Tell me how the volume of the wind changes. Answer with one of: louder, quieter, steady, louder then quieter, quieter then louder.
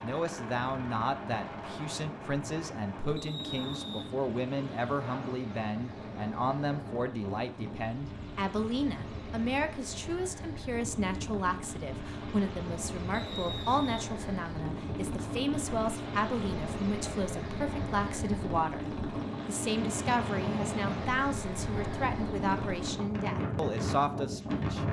louder.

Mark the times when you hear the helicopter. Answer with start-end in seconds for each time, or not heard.
0.0-23.1.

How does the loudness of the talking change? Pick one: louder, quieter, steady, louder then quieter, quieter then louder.
steady.